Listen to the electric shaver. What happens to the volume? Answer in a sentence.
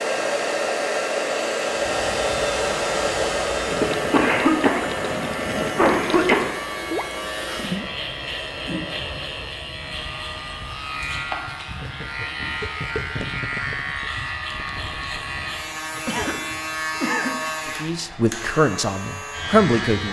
The volume of the electric shaver stays about the same.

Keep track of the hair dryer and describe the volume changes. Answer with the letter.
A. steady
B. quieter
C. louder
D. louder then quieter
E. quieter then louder
B.